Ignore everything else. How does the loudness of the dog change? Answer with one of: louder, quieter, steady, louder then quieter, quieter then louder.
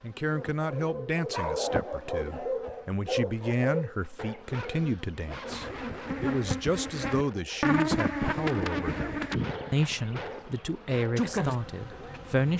quieter then louder.